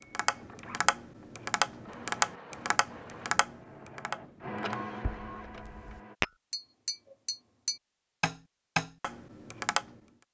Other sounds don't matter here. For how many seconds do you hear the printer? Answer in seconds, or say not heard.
6 s.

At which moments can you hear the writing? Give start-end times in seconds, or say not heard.
not heard.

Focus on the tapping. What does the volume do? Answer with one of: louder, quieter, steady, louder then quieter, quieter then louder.
quieter then louder.